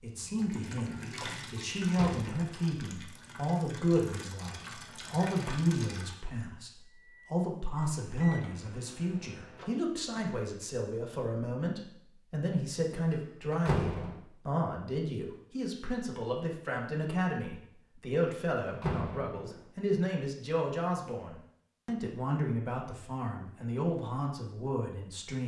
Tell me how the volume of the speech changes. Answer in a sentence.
The volume of the speech stays about the same.